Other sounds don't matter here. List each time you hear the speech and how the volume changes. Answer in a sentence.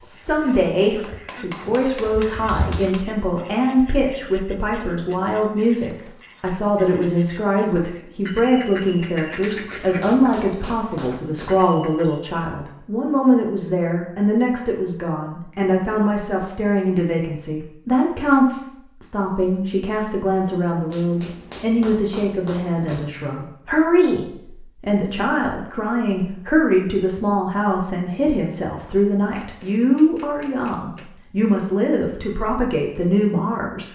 You can hear the speech from 0.0 to 33.9 s, at a steady volume.